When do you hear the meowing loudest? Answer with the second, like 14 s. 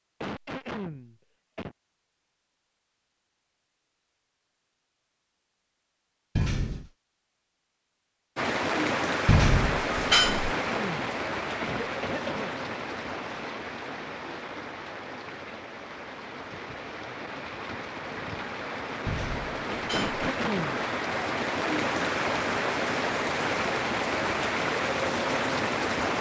10 s.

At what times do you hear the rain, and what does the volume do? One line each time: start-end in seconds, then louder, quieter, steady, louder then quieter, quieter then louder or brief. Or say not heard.
8.3-26.1 quieter then louder.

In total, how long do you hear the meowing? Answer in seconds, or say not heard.
3 s.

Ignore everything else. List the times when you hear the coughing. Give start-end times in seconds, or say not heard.
0.2-1.8, 10.2-12.6, 19.9-20.9.